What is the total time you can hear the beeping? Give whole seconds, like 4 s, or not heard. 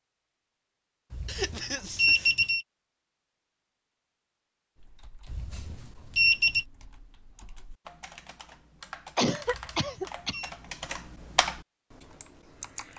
4 s.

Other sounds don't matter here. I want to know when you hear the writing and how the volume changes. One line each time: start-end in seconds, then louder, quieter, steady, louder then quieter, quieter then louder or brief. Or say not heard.
not heard.